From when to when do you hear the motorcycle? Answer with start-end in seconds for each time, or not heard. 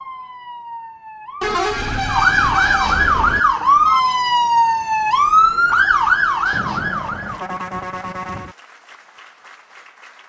not heard.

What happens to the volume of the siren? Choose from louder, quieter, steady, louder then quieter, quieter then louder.
louder.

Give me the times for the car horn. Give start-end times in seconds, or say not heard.
1.4-3.4, 6.5-8.6.